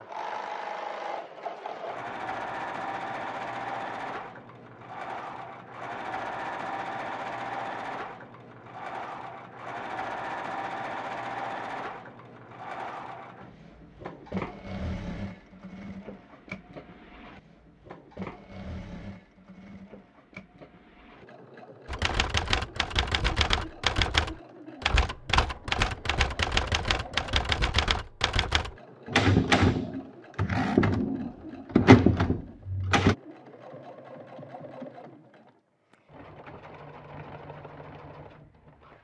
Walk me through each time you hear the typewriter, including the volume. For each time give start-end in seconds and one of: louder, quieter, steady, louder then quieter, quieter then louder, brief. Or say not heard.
21.9-33.1 louder.